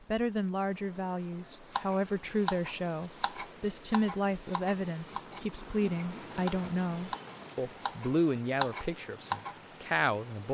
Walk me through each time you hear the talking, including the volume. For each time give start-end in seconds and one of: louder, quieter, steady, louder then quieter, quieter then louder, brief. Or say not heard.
0.1-10.4 steady.